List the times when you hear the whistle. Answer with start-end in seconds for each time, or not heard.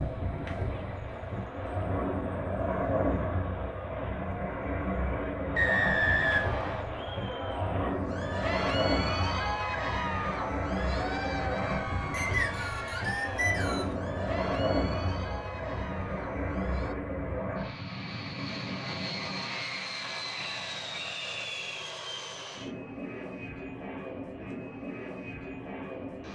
5.5-6.9, 12.1-13.9, 20.3-21.9.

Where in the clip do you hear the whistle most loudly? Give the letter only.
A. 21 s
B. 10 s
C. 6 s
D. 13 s
C.